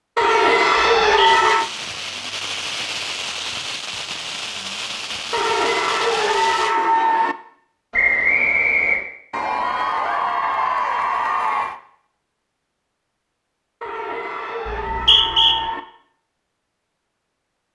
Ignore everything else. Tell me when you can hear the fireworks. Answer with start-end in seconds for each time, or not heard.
1.2-6.8.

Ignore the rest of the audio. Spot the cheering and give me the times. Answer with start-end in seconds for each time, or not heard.
0.1-1.7, 5.3-7.3, 9.3-11.8, 13.8-15.8.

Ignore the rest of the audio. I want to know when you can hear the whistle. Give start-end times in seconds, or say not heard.
1.0-1.5, 7.9-9.0, 14.7-15.6.